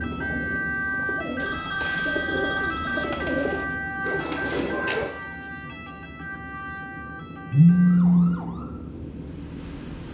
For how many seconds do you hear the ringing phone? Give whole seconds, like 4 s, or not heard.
3 s.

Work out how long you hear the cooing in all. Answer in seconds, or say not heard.
5 s.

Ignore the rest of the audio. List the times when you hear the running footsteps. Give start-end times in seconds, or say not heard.
not heard.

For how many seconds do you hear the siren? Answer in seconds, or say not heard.
10 s.